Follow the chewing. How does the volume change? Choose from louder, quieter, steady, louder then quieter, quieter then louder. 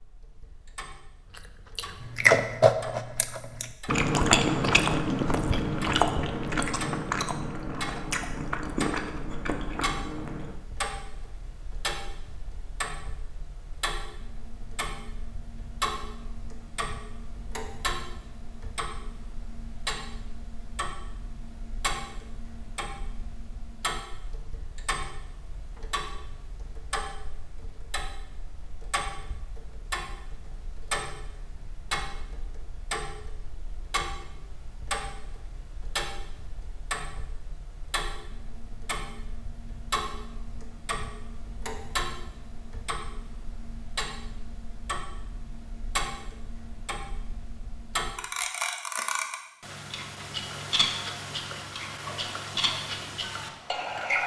quieter.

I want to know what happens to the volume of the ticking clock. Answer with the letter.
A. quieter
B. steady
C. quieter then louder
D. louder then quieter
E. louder
E.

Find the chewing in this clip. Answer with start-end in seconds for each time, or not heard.
1.4-10.6.